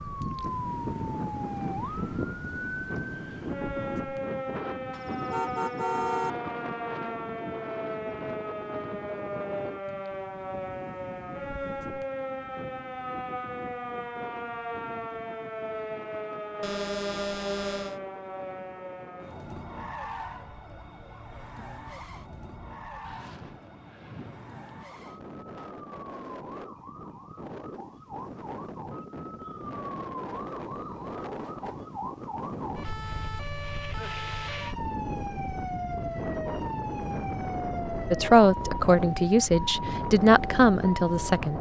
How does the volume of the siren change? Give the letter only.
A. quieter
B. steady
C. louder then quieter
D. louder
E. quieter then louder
E.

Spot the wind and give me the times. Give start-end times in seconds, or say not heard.
0.0-41.5.